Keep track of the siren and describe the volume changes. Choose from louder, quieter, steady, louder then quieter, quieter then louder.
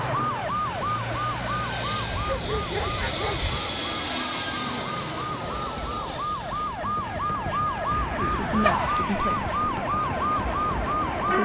quieter then louder.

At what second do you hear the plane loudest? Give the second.
4 s.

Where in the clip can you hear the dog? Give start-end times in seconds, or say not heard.
2.1-3.6, 8.6-9.0.